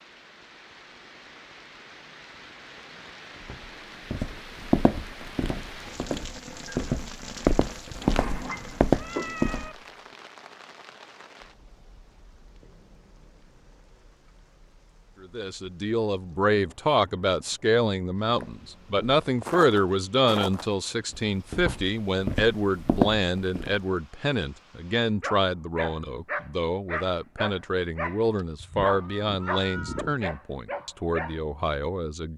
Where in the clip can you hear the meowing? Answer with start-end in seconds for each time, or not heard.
8.0-9.8, 28.6-30.1.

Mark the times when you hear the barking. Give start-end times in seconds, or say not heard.
25.0-31.4.